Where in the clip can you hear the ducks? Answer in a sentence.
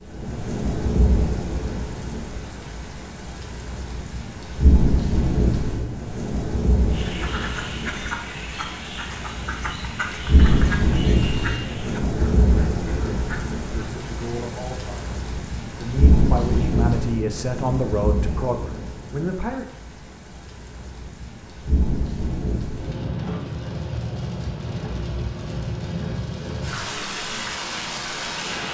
The ducks can be heard from 6.9 to 13.7 s.